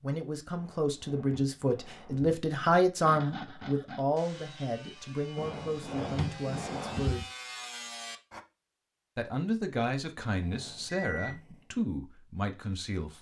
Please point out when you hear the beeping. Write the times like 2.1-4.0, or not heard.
10.4-11.7.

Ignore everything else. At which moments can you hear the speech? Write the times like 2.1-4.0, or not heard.
0.0-7.2, 9.2-13.1.